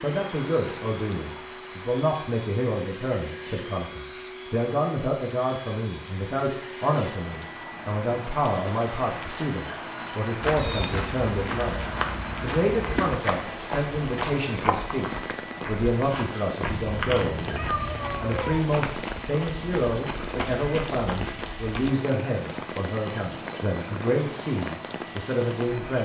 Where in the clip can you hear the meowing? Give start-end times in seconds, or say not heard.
10.5-11.1, 16.6-18.6.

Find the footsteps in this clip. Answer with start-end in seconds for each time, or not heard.
10.4-21.9.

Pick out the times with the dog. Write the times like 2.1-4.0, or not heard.
not heard.